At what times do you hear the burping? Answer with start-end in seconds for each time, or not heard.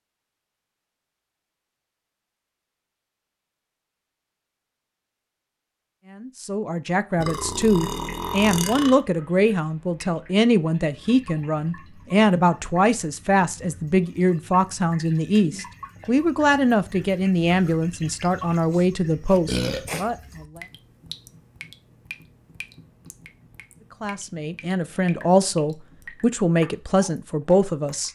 7.2-9.0, 19.4-19.9.